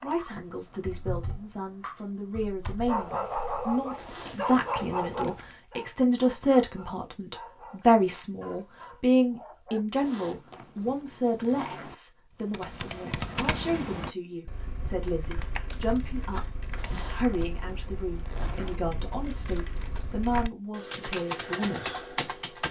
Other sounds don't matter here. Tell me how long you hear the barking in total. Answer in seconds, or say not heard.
7 s.